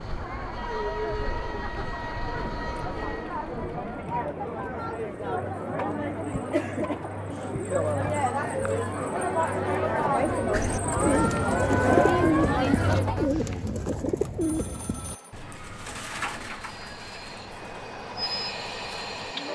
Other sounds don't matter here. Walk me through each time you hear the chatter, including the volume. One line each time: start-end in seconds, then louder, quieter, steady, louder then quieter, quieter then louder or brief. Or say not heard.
0.0-13.3 louder.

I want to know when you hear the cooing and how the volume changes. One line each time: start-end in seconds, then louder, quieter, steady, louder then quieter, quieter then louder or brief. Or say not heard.
10.5-19.5 quieter.